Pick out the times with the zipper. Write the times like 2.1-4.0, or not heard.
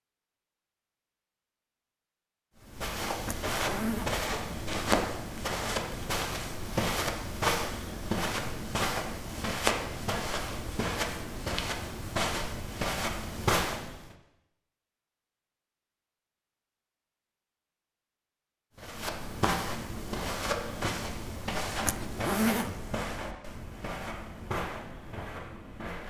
3.2-5.1, 21.9-22.9.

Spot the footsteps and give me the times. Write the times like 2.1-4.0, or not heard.
2.6-14.2, 18.8-26.0.